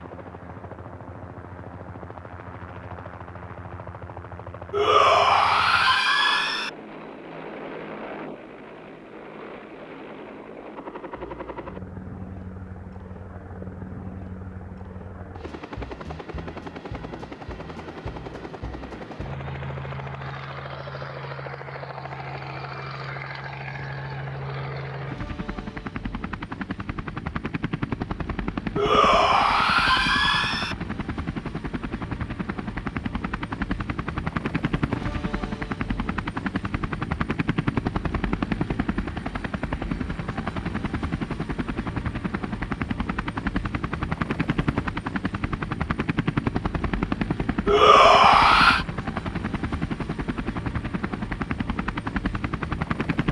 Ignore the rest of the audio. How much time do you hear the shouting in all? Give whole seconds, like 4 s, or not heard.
5 s.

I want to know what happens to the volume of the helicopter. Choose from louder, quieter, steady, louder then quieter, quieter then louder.
louder.